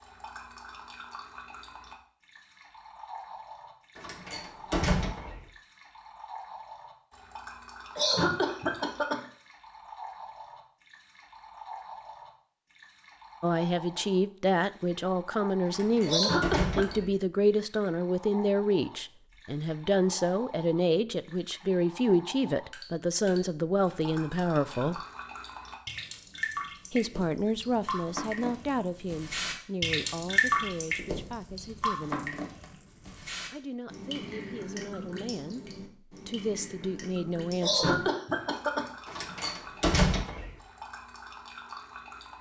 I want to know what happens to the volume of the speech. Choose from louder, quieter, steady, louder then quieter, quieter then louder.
quieter.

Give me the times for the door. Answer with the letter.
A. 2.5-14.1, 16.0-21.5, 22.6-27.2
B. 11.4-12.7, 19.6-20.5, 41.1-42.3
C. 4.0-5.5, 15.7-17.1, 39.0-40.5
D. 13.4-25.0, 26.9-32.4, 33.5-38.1
C.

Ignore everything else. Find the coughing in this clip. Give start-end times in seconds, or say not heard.
8.0-9.2, 16.1-17.0, 37.6-38.9.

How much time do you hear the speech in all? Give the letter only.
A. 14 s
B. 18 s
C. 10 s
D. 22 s
D.